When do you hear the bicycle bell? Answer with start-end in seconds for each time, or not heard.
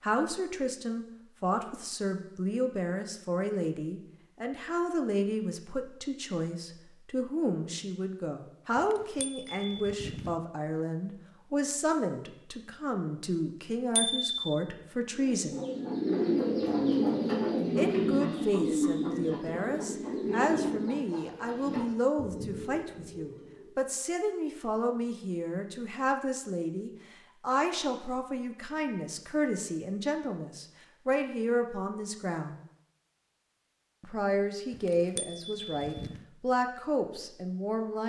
8.8-10.4, 13.9-14.3, 34.7-36.2.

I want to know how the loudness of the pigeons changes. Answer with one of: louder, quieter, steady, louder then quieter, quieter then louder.
quieter.